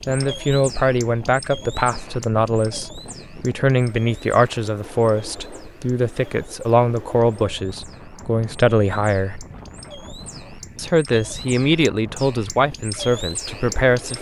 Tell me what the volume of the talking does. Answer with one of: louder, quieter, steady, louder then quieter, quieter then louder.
steady.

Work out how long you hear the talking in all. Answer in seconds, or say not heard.
13 s.